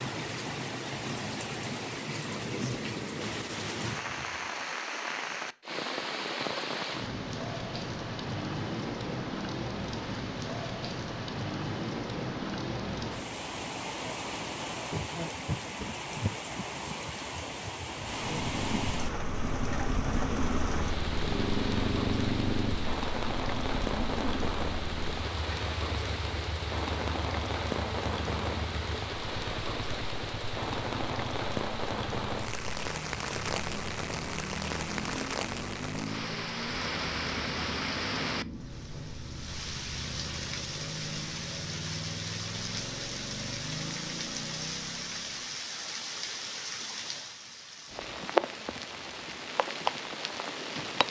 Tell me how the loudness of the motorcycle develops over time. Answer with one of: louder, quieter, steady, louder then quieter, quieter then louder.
quieter.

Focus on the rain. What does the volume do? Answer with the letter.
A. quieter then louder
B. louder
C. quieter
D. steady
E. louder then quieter
D.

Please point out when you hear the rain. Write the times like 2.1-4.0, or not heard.
0.0-51.0.